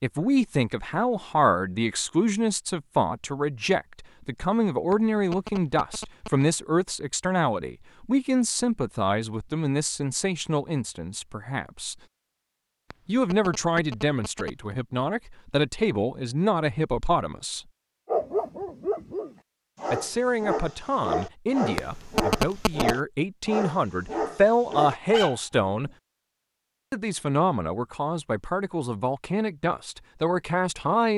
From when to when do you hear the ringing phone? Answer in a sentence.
You can hear the ringing phone from 4.9 to 6.5 s, from 12.9 to 14.7 s and from 21.8 to 22.9 s.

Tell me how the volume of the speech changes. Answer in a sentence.
The volume of the speech stays about the same.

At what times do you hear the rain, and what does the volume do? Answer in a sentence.
The rain can't be heard in this clip.